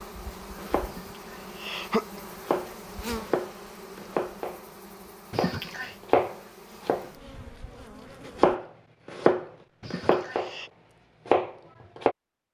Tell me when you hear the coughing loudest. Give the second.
2 s.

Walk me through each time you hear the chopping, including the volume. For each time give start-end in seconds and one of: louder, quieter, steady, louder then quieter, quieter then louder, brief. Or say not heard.
0.6-4.6 louder
5.3-10.5 quieter then louder
11.2-12.2 brief.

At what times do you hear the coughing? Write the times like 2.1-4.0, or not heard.
0.8-2.2, 5.3-6.0, 9.8-10.7.